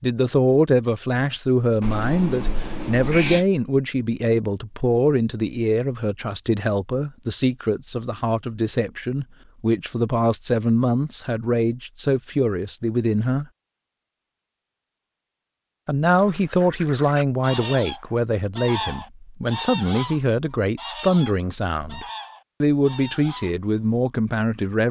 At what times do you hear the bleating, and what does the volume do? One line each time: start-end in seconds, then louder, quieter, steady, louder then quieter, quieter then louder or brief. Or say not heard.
not heard.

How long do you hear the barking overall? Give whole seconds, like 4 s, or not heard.
not heard.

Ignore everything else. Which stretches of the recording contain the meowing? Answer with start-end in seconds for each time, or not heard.
1.8-3.5.